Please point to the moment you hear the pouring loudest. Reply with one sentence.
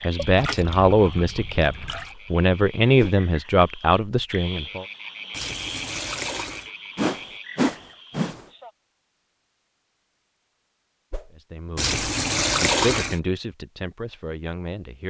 The volume of the pouring peaks at 13 seconds.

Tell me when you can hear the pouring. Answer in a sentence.
The pouring can be heard from 0.1 to 2.1 s, from 5.3 to 6.7 s and from 11.8 to 13.2 s.